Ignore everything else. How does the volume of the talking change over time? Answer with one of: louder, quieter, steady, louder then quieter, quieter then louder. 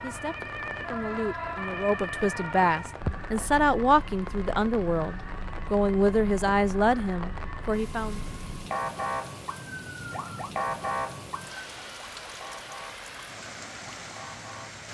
louder.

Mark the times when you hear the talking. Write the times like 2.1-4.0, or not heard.
0.0-8.2.